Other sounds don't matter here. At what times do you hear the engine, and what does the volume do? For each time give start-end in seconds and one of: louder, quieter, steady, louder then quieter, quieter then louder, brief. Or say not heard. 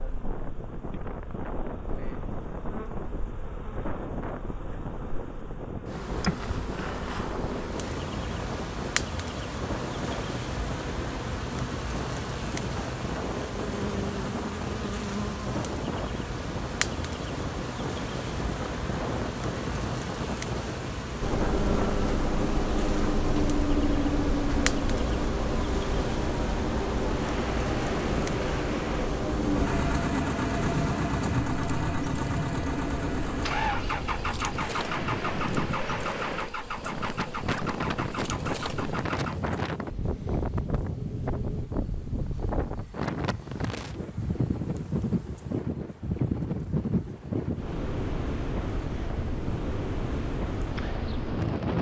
21.2-41.7 quieter.